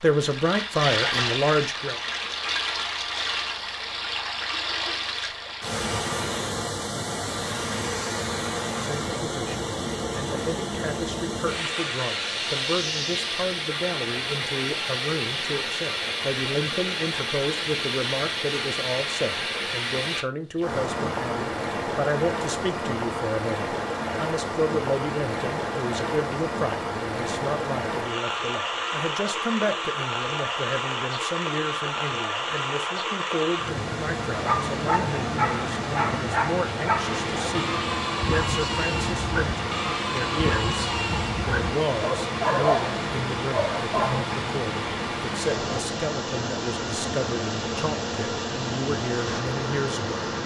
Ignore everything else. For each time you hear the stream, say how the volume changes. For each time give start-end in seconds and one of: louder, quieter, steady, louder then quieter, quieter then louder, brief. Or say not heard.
0.0-50.4 steady.